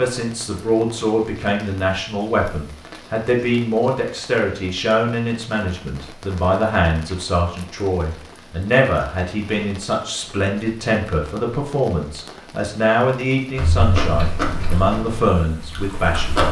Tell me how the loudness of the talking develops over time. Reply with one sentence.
The loudness of the talking stays about the same.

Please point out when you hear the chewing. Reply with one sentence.
The chewing can be heard from 13.6 to 16.4 s.